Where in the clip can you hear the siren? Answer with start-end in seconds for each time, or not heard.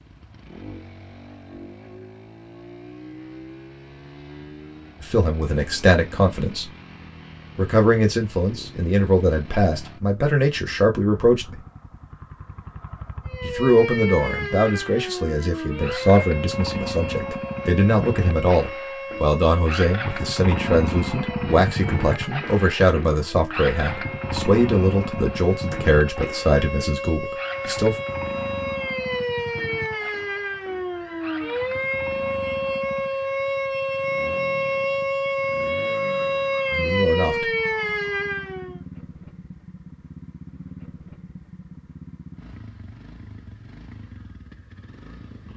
13.2-38.8.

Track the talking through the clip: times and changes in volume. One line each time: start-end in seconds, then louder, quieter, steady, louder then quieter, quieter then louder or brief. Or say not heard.
5.0-6.7 brief
7.5-11.6 steady
13.4-27.9 steady
36.7-37.5 brief.